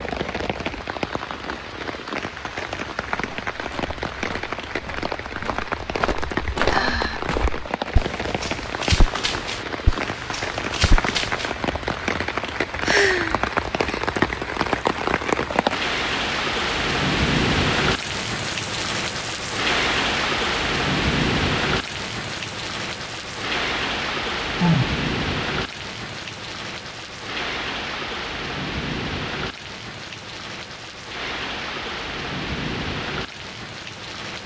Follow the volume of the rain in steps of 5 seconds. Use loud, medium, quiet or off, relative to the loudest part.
medium, medium, loud, loud, loud, medium, medium.